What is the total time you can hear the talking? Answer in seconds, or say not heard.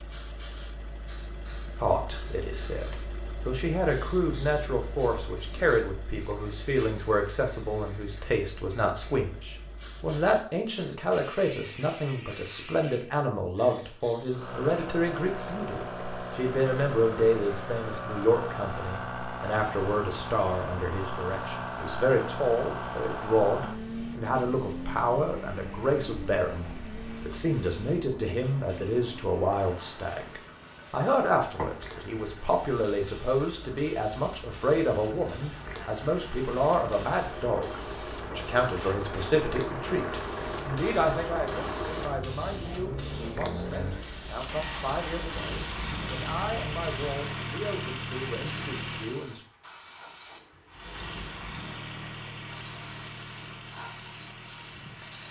48 s.